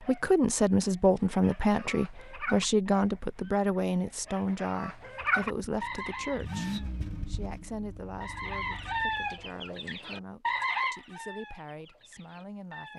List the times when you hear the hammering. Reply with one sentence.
The hammering can't be heard in this clip.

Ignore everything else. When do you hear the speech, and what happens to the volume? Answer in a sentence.
You can hear the speech from 0.0 to 12.9 s, getting quieter.